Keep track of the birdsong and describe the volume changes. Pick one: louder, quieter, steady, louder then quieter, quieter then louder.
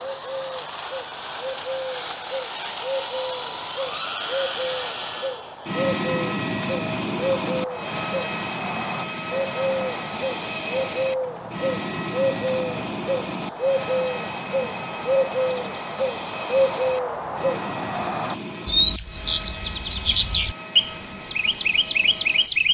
louder.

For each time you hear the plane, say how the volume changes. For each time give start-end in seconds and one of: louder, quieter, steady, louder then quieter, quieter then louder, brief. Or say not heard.
0.0-22.6 quieter.